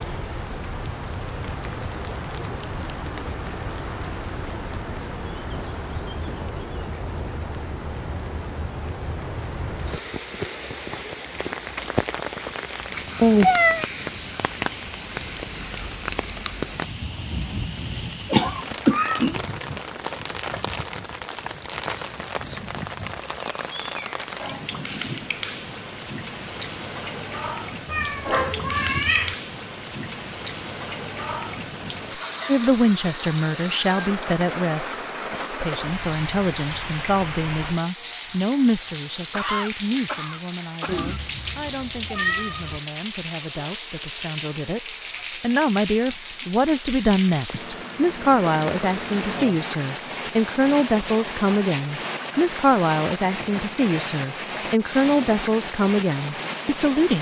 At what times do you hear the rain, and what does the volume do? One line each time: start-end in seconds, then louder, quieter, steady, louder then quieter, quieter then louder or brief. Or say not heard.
0.0-57.1 steady.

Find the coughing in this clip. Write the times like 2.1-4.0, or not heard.
18.3-19.8, 39.3-41.2.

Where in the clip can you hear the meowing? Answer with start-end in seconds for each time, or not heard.
13.2-13.8, 27.9-29.4, 40.9-42.8.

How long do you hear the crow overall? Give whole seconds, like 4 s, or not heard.
not heard.